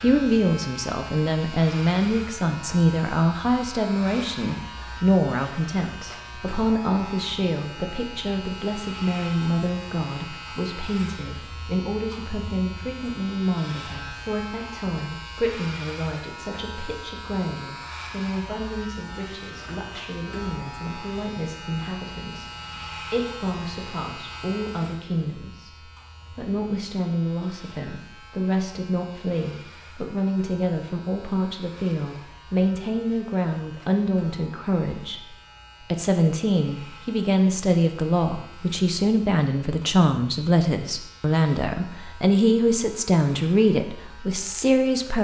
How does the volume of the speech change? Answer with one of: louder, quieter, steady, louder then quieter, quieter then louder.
quieter then louder.